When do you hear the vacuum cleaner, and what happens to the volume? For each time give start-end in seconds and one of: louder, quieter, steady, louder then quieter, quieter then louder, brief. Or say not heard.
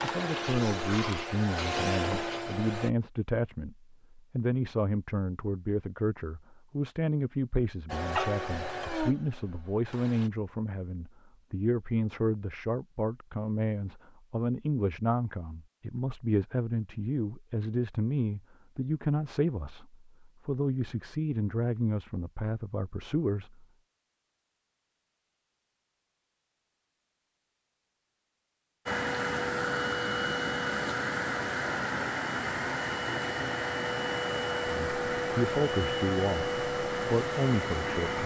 0.0-2.9 brief
7.8-10.3 brief
28.9-38.2 steady.